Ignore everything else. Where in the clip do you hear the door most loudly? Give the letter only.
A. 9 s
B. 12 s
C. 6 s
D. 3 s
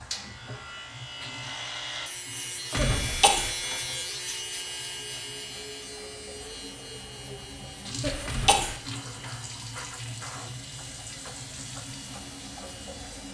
D.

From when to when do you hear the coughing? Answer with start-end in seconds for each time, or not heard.
2.8-3.5, 8.0-8.8.